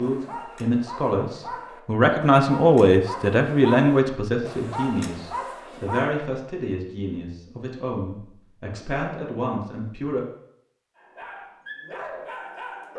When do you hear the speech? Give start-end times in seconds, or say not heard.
0.0-10.2.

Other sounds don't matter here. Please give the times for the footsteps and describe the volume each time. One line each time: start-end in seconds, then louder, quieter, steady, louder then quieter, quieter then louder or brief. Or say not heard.
not heard.